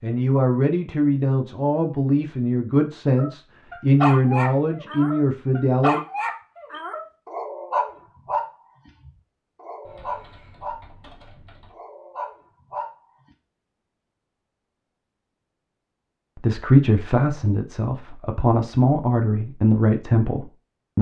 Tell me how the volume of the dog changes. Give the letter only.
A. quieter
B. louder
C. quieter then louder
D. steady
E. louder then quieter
A.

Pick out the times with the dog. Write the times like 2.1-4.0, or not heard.
3.1-12.9.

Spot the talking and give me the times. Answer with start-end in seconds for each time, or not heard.
0.0-6.0, 16.4-20.9.